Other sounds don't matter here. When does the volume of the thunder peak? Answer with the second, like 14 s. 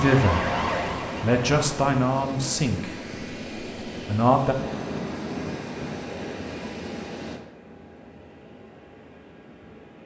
5 s.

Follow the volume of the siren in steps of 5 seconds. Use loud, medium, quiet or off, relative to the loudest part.
loud, off.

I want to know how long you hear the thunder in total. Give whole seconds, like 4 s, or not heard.
2 s.